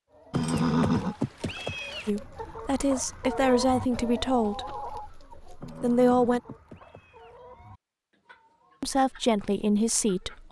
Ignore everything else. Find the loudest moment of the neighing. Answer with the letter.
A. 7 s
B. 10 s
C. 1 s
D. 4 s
C.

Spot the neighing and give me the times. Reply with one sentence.
You can hear the neighing from 0.3 to 2.1 s and from 5.6 to 7.4 s.